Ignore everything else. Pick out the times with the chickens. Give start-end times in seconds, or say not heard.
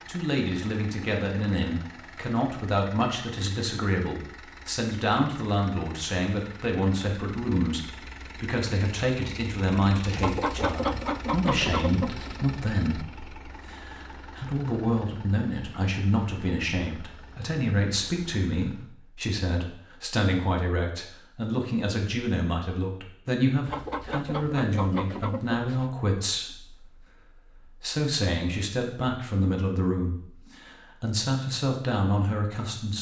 10.2-12.4, 23.6-25.9.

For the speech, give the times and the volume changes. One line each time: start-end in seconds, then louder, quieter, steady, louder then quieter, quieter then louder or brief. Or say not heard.
0.0-32.9 steady.